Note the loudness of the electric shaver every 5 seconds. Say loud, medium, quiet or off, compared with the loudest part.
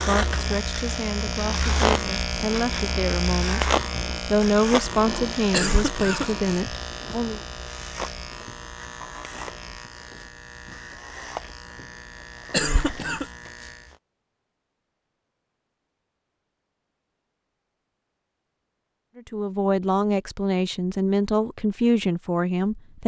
loud, medium, quiet, off, off.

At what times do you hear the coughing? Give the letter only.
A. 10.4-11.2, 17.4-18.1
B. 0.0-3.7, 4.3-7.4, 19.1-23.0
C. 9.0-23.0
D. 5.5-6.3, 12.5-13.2
D.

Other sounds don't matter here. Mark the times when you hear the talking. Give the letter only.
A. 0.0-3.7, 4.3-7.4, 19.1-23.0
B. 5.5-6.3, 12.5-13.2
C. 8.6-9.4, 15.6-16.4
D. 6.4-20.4
A.